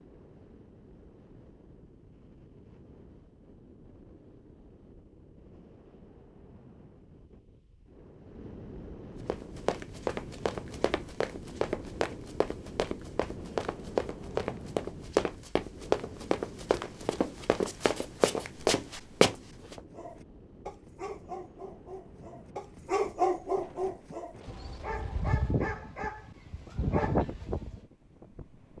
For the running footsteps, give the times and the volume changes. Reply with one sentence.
You can hear the running footsteps from 9.2 to 19.8 s, getting louder.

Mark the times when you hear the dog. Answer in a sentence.
You can hear the dog from 19.9 to 27.9 s.